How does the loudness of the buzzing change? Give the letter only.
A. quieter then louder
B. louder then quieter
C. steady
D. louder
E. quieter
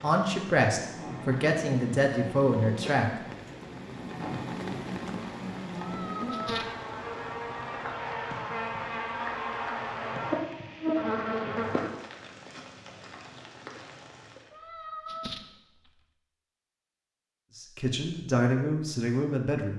D.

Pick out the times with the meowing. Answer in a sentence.
The meowing can be heard from 5.8 to 6.8 s and from 14.5 to 16.0 s.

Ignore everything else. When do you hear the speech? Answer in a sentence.
You can hear the speech from 0.0 to 3.1 s and from 17.6 to 19.7 s.